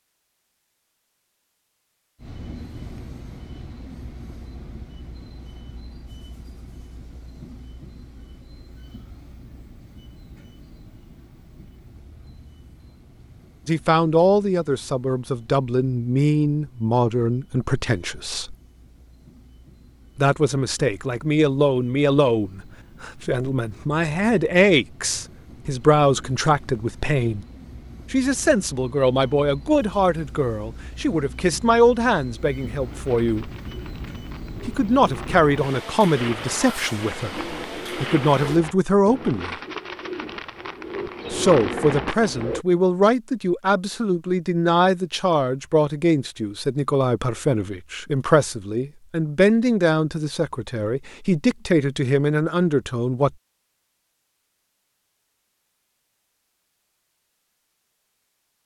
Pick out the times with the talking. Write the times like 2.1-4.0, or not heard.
13.7-18.6, 20.1-27.4, 28.1-33.5, 34.6-39.5, 41.3-53.3.